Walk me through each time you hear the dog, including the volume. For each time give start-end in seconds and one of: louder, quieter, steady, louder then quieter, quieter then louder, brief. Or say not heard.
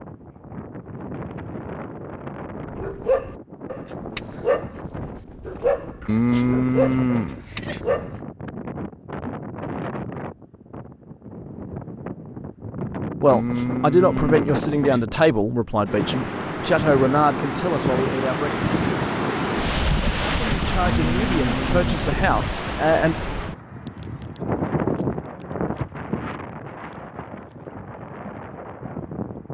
2.7-8.2 quieter.